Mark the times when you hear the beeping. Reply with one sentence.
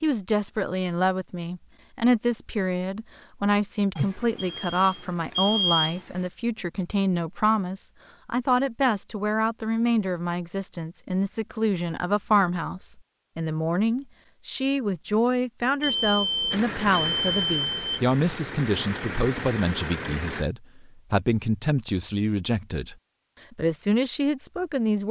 The beeping can be heard from 4.0 to 6.2 s and from 15.8 to 18.4 s.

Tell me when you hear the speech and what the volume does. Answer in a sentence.
The speech can be heard from 0.0 to 25.0 s, at a steady volume.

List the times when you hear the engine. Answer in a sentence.
You can hear the engine from 16.5 to 20.4 s.